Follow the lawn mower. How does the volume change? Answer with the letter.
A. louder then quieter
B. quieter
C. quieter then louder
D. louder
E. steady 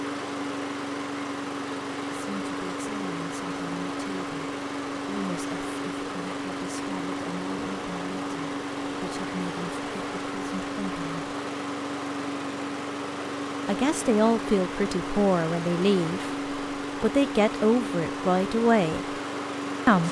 E.